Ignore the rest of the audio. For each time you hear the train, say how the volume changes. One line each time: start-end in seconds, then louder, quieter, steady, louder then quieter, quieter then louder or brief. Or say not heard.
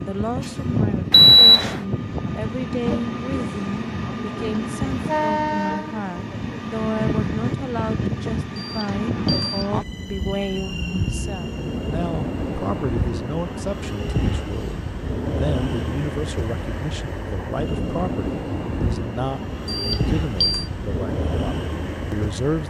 0.0-22.6 steady.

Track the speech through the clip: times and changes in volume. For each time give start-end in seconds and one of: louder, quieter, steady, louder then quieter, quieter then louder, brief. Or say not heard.
0.0-22.6 steady.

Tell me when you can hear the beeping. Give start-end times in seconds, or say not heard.
1.1-1.8, 8.6-9.7, 19.6-20.7.